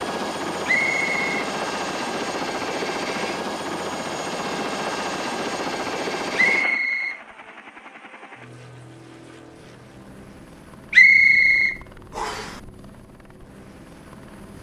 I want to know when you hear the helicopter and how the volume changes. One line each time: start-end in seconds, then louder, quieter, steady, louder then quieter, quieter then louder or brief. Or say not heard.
0.0-14.5 quieter.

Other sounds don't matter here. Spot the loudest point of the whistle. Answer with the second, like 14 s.
11 s.